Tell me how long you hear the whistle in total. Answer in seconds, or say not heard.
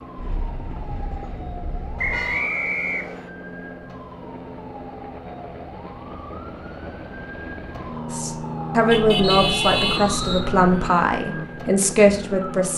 3 s.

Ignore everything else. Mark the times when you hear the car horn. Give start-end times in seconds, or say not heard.
0.1-2.5, 8.9-10.9.